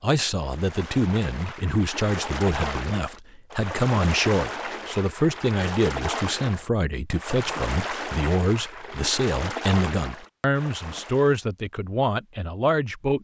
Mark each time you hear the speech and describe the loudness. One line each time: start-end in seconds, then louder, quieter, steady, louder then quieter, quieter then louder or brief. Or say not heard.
0.0-13.2 steady.